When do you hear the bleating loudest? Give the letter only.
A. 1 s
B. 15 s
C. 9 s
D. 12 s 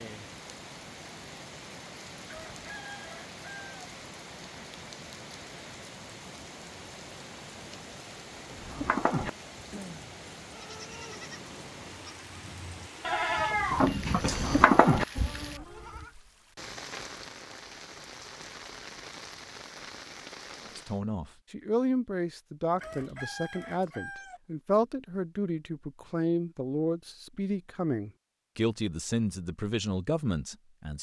B.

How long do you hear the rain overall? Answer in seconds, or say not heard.
21 s.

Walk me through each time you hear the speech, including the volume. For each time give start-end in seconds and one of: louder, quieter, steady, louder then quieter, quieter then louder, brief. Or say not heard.
20.6-30.9 steady.